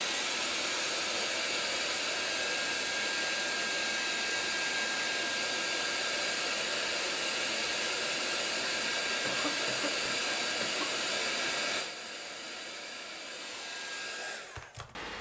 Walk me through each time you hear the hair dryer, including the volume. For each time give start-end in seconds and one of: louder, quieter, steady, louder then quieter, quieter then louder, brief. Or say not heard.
0.0-15.1 quieter.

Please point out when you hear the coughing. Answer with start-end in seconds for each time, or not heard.
9.2-11.0.